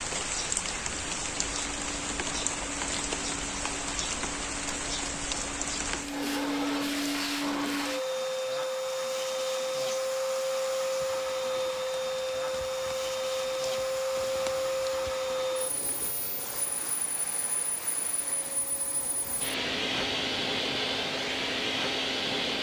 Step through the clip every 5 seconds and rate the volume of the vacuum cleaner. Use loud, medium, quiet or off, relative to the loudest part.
quiet, loud, loud, medium, loud.